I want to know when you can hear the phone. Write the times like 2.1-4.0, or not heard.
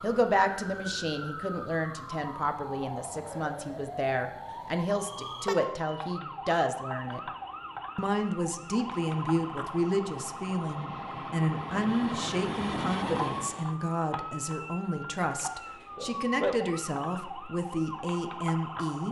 not heard.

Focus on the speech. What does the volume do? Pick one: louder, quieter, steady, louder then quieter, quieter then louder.
steady.